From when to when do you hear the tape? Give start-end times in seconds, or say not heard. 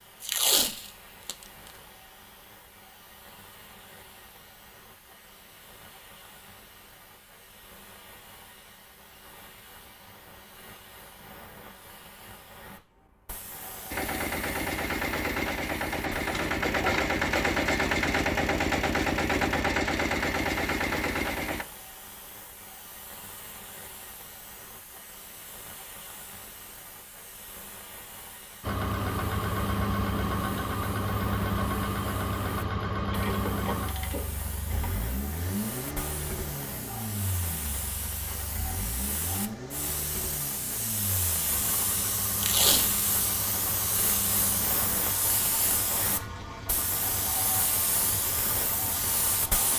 0.2-1.4, 42.4-43.0.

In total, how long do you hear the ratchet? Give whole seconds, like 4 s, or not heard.
2 s.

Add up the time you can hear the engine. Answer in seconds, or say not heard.
29 s.